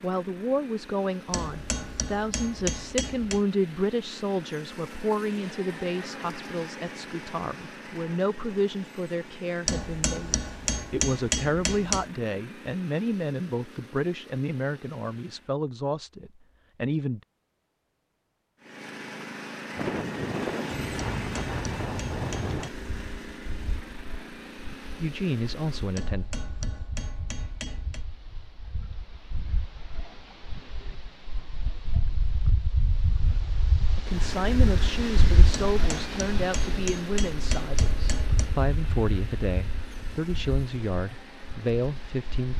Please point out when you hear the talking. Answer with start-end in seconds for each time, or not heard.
0.0-17.2, 25.0-26.2, 34.0-42.5.